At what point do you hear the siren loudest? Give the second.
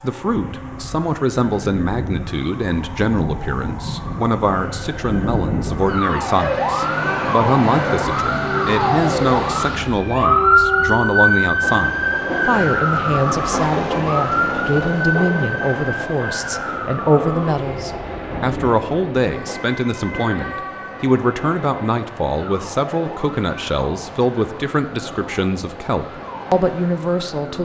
11 s.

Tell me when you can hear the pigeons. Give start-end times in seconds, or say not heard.
not heard.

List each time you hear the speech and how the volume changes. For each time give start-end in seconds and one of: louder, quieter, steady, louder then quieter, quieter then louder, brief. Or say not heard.
0.0-27.6 steady.